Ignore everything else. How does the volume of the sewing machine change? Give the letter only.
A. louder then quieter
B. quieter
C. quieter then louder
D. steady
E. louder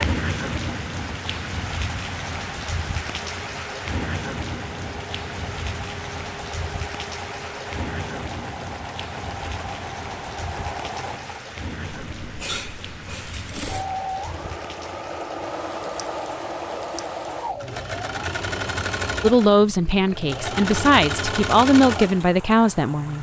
E.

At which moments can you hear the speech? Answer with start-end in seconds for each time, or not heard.
19.2-23.1.